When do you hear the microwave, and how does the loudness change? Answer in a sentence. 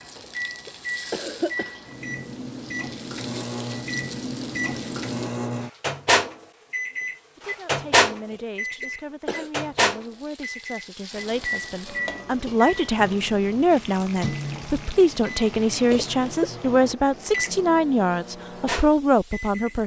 The microwave can be heard from 0.0 to 19.8 s, getting louder then quieter.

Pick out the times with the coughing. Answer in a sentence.
The coughing can be heard from 0.1 to 1.8 s, from 8.3 to 9.5 s and from 15.9 to 16.5 s.